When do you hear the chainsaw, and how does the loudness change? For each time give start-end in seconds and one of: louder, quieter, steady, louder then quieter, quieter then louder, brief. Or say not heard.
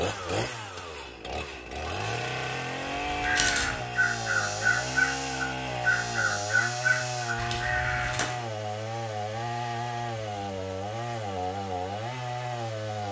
0.0-13.0 steady.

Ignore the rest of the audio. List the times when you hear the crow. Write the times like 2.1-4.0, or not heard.
3.0-8.4.